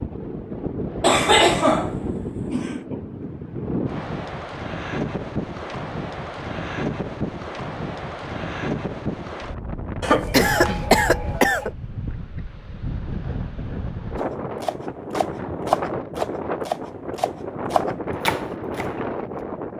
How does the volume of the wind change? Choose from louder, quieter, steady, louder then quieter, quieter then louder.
steady.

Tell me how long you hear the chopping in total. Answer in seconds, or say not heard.
5 s.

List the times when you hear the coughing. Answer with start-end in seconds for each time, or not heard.
1.0-2.8, 10.0-11.7.